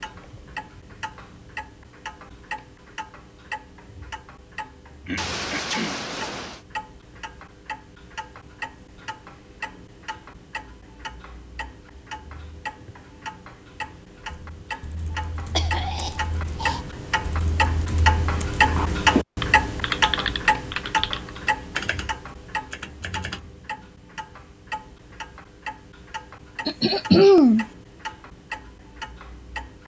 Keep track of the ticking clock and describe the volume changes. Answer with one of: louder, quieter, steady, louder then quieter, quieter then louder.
louder then quieter.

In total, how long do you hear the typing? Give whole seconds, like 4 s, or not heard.
9 s.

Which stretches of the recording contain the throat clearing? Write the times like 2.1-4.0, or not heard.
5.0-6.0, 15.6-16.8, 26.6-27.6.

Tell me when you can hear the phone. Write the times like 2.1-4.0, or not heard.
5.2-6.7.